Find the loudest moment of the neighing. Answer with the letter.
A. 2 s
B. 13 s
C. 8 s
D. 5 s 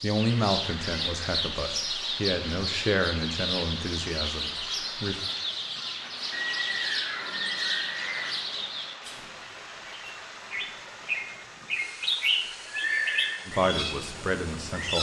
B.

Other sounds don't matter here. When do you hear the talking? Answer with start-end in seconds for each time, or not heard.
0.0-5.2, 13.4-14.9.